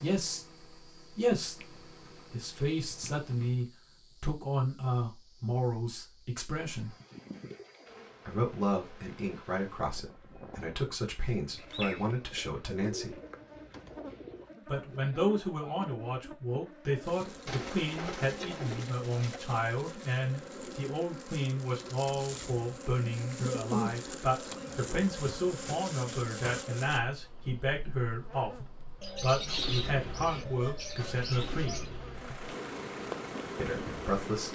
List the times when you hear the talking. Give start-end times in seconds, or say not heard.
0.0-7.0, 8.2-13.2, 14.7-28.6, 29.2-31.8, 33.5-34.5.